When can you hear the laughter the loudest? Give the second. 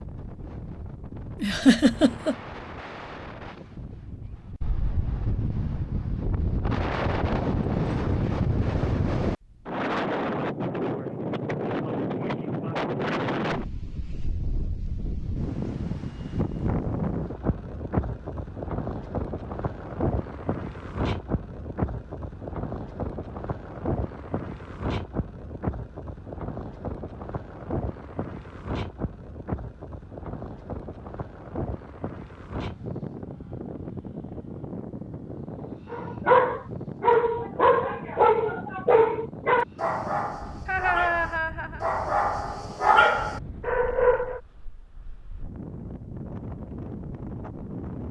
2 s.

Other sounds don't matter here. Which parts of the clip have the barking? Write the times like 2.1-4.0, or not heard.
35.9-44.4.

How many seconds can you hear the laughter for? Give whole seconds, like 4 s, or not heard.
2 s.